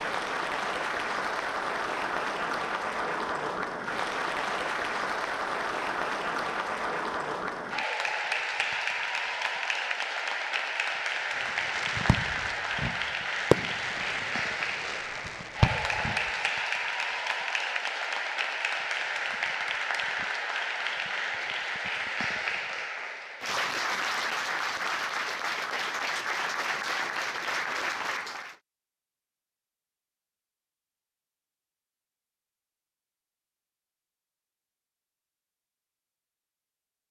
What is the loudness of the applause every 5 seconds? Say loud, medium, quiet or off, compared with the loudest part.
loud, loud, loud, loud, loud, loud, off, off.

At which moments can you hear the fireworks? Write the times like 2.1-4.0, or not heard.
11.4-16.5.